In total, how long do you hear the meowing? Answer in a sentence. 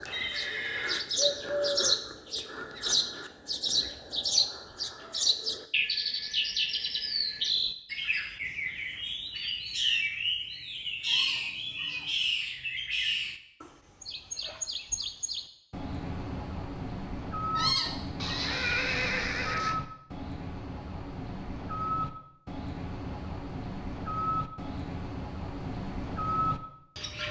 The meowing can be heard for 2 seconds in total.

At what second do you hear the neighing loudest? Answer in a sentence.
The volume of the neighing peaks at 19 seconds.